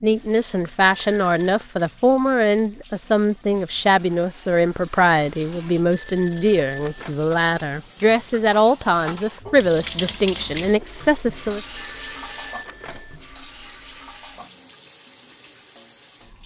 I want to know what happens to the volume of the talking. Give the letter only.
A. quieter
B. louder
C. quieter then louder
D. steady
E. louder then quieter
D.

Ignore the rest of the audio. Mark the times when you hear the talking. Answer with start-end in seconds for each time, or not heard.
0.0-11.6.